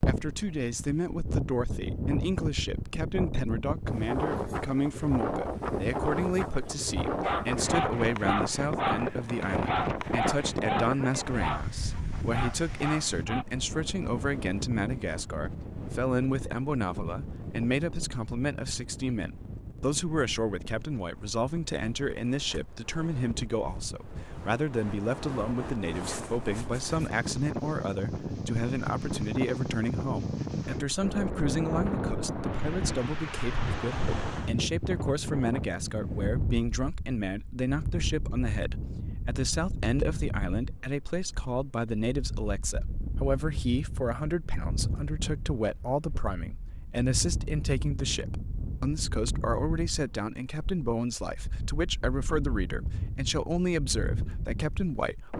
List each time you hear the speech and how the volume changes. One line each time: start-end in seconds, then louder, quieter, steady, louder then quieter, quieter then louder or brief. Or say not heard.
0.0-55.3 steady.